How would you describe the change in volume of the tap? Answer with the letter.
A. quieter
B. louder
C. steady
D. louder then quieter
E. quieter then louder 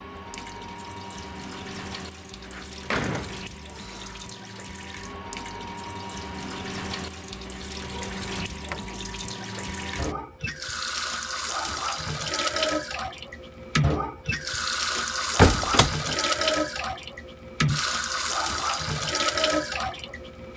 B.